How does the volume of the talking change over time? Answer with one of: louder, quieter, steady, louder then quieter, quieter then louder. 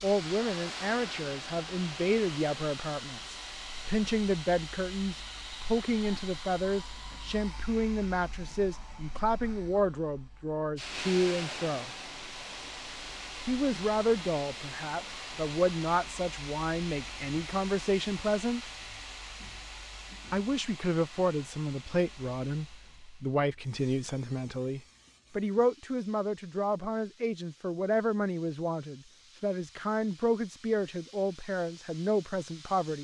steady.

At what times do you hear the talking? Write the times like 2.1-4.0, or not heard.
0.0-11.9, 13.4-18.6, 20.3-32.9.